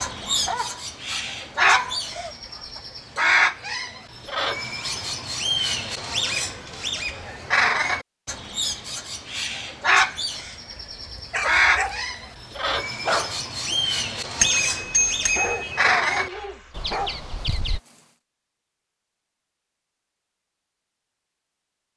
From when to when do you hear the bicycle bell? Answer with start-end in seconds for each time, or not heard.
14.4-15.8.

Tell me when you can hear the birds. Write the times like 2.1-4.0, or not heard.
0.0-17.8.